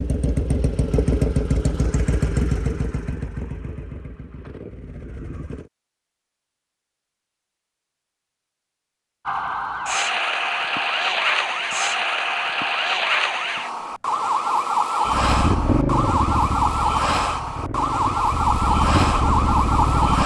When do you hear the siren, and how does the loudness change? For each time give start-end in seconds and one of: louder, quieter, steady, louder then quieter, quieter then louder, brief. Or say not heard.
9.2-20.2 steady.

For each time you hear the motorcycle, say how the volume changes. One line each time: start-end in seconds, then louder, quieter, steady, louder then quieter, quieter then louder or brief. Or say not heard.
0.0-5.7 quieter
15.1-20.2 quieter then louder.